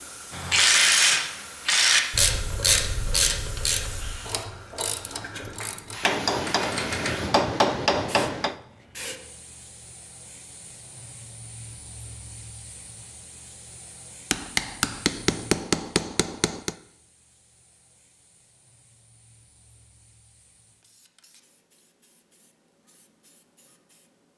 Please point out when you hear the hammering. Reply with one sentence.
The hammering can be heard from 6.0 to 8.6 s and from 14.3 to 16.8 s.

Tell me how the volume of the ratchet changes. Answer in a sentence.
The volume of the ratchet goes down.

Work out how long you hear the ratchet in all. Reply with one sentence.
The ratchet can be heard for 7 seconds in total.